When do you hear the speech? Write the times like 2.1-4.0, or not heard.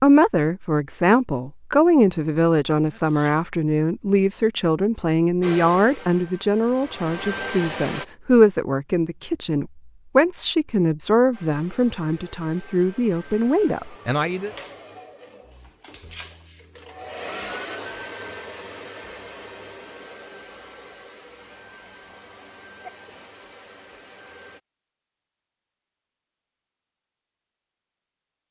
0.0-14.5.